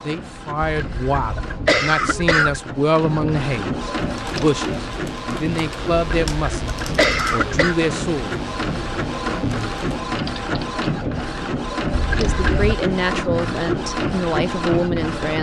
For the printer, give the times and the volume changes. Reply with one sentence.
The printer can be heard from 0.0 to 15.3 s, getting louder.